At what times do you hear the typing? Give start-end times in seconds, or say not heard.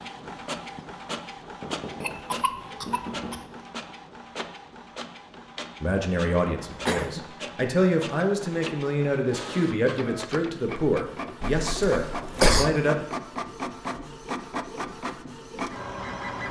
not heard.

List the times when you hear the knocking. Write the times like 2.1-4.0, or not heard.
1.4-4.0.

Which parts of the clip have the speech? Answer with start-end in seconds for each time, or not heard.
5.8-13.1.